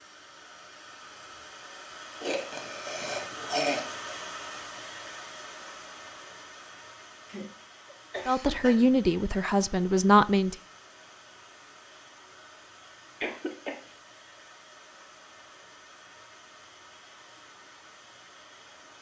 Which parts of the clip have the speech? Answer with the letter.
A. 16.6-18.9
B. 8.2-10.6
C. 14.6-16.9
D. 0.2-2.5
B.